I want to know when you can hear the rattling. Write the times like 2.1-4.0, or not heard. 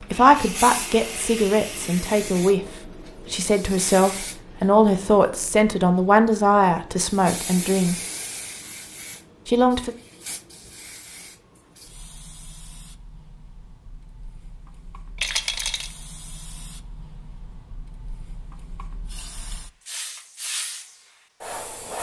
15.2-15.9.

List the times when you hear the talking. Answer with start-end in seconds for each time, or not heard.
0.0-8.0, 9.4-9.9.